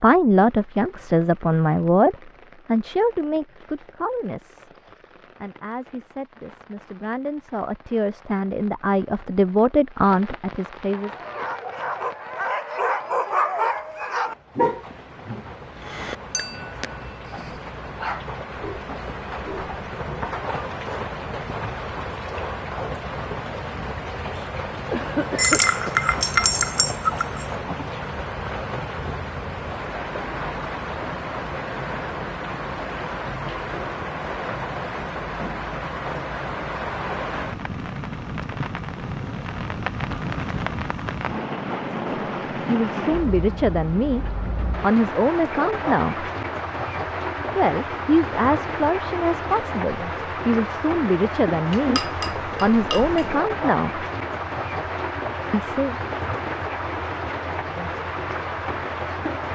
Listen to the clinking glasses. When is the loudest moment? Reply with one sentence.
The loudest moment of the clinking glasses is at 26 seconds.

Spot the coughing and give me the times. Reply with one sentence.
The coughing can be heard from 24.4 to 25.9 s.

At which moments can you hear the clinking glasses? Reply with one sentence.
You can hear the clinking glasses from 16.3 to 16.9 s, from 25.4 to 27.4 s and from 51.7 to 53.5 s.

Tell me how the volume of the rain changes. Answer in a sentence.
The volume of the rain goes up.